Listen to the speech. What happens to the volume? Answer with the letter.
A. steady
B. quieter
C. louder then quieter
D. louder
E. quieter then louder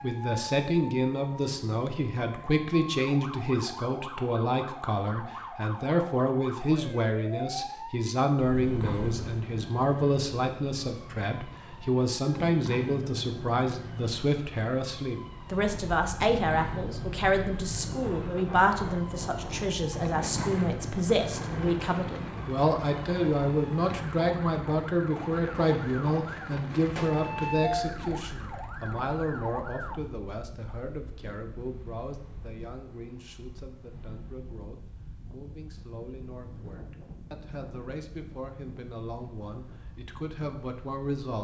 B.